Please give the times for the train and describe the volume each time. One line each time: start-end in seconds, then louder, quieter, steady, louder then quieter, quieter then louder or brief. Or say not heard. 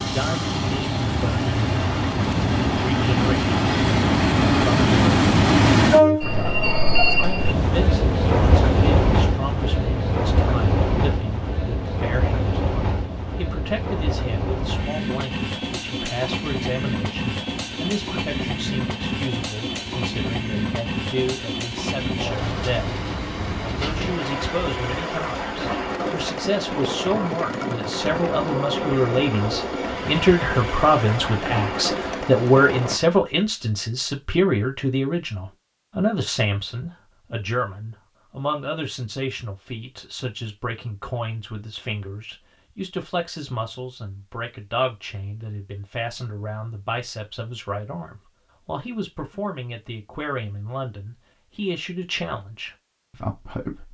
0.0-33.0 quieter.